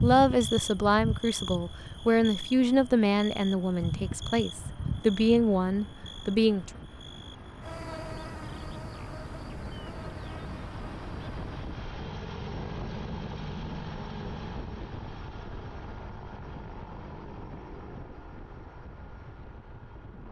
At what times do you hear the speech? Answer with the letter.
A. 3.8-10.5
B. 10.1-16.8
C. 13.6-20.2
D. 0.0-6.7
D.